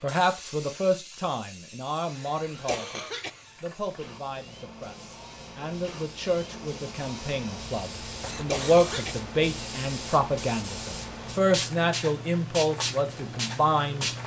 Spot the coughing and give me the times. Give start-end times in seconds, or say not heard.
2.6-3.3, 8.4-9.2.